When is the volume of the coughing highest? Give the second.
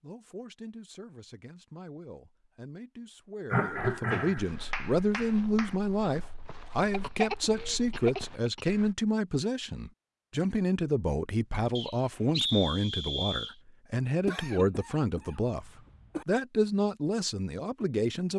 4 s.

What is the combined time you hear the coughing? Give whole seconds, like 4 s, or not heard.
5 s.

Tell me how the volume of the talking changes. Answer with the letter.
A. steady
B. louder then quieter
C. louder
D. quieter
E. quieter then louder
C.